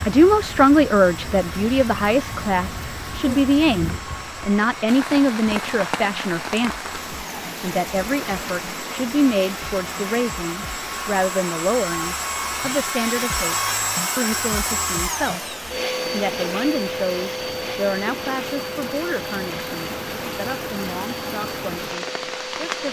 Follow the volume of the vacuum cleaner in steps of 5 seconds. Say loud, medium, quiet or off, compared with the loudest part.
medium, medium, loud, loud, medium.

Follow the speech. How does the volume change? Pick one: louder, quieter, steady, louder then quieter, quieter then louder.
quieter.